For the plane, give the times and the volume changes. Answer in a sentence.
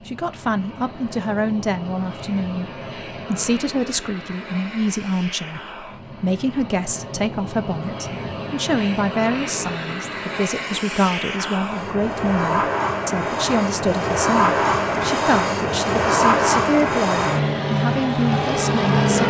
The plane can be heard from 0.0 to 19.2 s, getting louder.